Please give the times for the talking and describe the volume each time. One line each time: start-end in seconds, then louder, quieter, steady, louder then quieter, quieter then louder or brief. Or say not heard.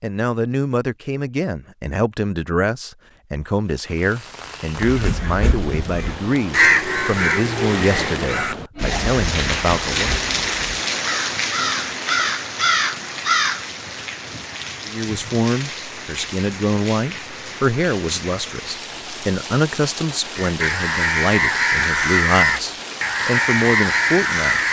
0.0-10.2 steady
14.8-24.6 steady.